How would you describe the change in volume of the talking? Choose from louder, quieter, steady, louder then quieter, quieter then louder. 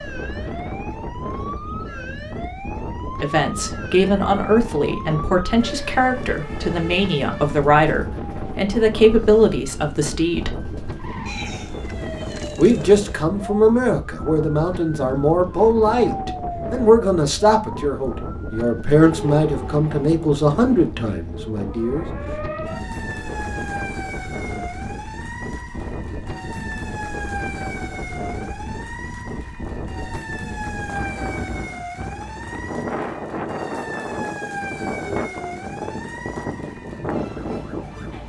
steady.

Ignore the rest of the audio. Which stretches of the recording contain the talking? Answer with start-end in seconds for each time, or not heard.
3.2-10.6, 12.6-22.1.